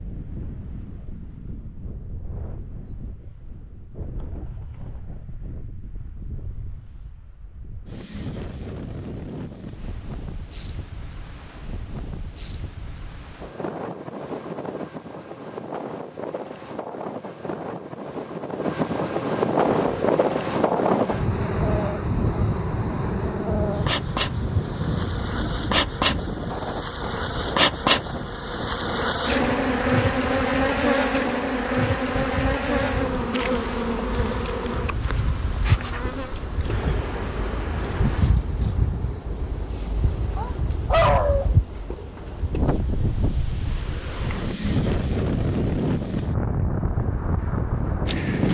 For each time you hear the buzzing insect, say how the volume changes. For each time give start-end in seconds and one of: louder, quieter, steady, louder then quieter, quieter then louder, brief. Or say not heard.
19.6-38.2 louder then quieter.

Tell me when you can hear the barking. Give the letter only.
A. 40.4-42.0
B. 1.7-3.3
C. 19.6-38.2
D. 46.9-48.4
A.